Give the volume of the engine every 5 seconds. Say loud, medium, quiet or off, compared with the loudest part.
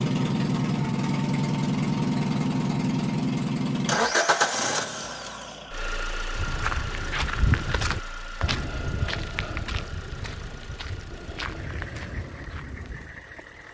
loud, quiet, quiet.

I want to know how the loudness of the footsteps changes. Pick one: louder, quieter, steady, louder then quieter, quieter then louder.
quieter.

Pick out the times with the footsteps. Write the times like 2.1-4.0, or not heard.
6.3-13.1.